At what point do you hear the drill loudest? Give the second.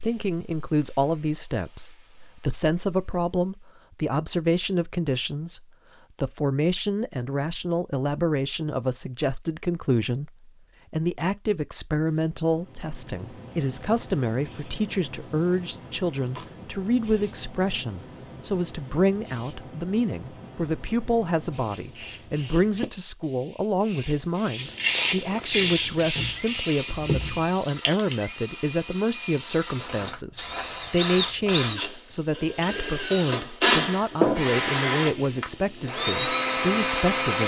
34 s.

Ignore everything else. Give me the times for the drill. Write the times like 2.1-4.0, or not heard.
25.5-37.4.